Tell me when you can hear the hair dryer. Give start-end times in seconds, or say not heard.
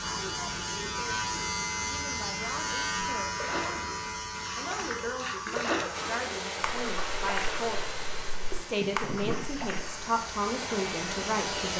5.9-11.7.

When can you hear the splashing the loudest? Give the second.
6 s.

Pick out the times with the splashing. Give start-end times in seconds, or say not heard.
3.4-10.1.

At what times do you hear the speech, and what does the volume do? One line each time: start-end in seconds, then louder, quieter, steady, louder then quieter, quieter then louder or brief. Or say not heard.
0.0-11.7 louder.